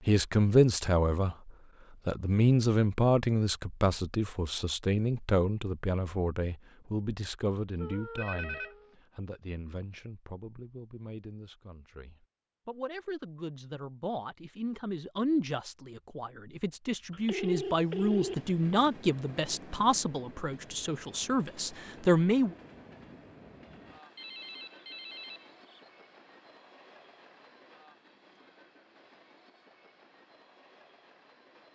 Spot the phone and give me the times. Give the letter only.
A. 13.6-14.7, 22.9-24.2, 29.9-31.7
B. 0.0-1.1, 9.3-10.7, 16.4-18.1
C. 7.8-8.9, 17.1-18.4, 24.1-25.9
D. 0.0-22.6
C.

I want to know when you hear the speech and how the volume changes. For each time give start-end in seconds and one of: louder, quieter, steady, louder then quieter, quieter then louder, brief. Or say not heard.
0.0-22.6 quieter then louder.